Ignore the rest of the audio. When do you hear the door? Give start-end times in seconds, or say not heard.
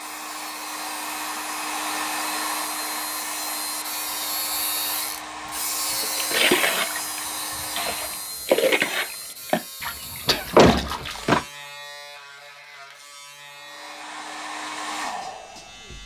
10.3-11.4.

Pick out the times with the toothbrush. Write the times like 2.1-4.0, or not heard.
not heard.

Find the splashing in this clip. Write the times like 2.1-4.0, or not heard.
6.0-11.3.